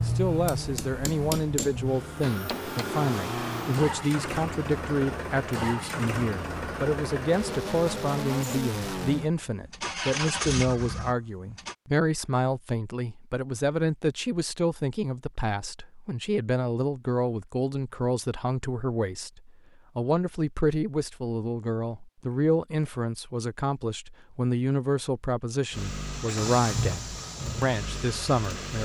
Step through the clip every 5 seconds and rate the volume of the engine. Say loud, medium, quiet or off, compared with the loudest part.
loud, loud, loud, off, off, loud.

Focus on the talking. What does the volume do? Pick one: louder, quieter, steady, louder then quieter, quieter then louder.
steady.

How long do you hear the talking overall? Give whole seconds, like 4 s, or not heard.
29 s.